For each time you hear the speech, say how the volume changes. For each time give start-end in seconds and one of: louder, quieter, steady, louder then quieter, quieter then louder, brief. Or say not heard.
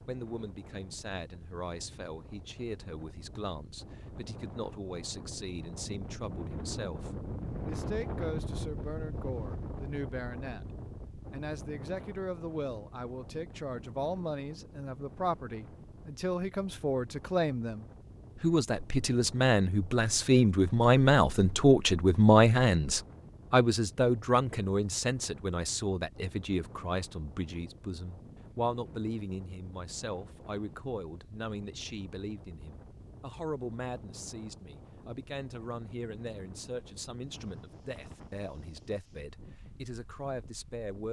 0.1-10.7 steady
11.3-41.0 louder then quieter.